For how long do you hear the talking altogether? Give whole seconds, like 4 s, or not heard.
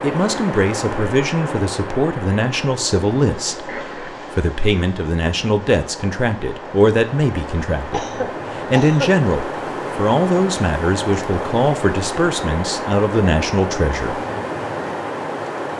14 s.